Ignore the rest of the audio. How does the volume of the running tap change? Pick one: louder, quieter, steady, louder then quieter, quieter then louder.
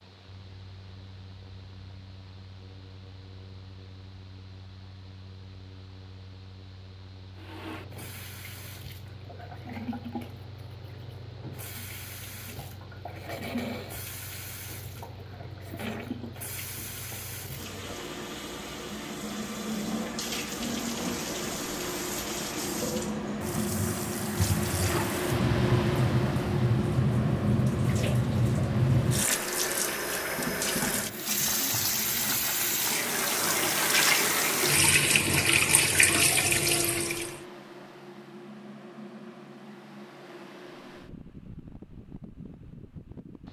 louder.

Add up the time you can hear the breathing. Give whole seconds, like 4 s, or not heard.
not heard.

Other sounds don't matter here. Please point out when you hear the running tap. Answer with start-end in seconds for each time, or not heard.
7.3-37.4.